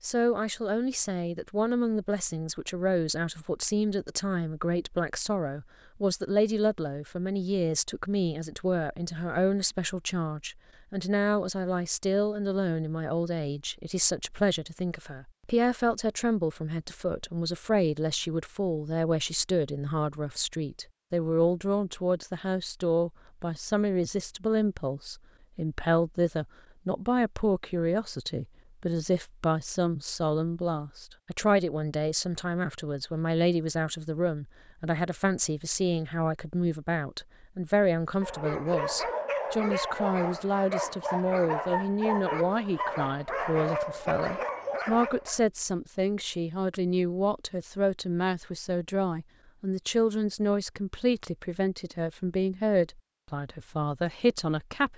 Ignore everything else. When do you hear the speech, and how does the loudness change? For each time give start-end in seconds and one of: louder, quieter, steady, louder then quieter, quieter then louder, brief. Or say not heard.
0.0-54.9 steady.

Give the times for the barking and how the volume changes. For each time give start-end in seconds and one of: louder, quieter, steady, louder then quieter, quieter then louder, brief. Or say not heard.
38.2-45.4 steady.